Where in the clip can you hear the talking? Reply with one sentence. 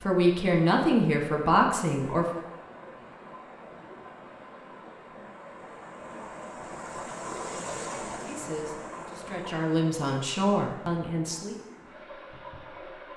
The talking can be heard from 0.0 to 2.5 s and from 8.2 to 11.6 s.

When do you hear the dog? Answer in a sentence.
The dog can't be heard in this clip.